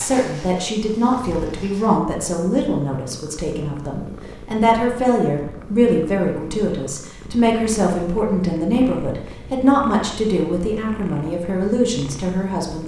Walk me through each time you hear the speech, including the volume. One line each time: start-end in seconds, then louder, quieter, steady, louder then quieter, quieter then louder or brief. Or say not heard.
0.0-12.8 steady.